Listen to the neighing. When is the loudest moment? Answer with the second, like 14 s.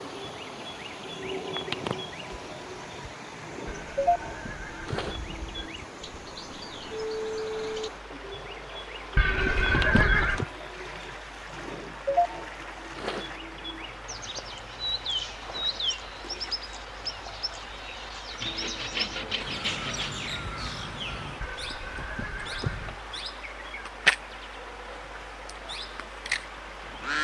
10 s.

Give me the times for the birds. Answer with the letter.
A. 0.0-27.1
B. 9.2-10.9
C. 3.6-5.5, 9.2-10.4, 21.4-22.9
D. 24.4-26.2
A.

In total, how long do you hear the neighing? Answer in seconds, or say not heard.
5 s.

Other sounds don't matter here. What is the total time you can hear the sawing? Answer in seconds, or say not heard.
2 s.